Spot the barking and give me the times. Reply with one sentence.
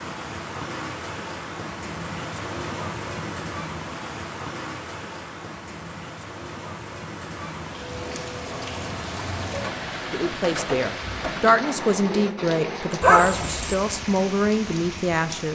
You can hear the barking from 13.0 to 13.8 s.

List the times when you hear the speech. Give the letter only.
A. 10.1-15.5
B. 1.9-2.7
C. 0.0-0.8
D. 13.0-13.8
A.